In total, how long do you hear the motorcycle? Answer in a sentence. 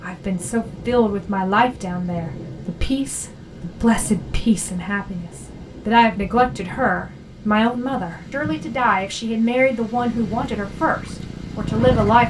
You can hear the motorcycle for 2 seconds altogether.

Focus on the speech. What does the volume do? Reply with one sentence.
The volume of the speech stays about the same.